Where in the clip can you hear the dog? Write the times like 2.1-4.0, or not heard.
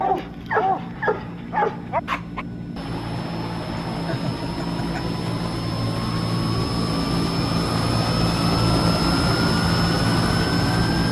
0.0-2.5.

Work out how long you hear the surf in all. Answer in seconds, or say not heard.
not heard.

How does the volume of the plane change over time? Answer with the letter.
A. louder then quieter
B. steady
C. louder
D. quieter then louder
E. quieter
C.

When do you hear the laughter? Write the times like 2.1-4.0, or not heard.
4.0-5.0.